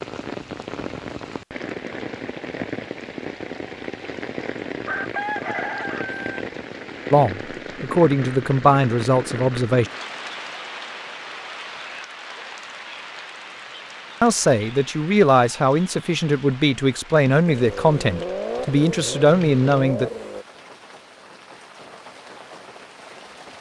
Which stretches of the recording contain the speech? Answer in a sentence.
The speech can be heard from 7.1 to 9.9 s and from 14.2 to 20.1 s.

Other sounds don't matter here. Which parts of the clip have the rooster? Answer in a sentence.
You can hear the rooster from 4.8 to 6.3 s.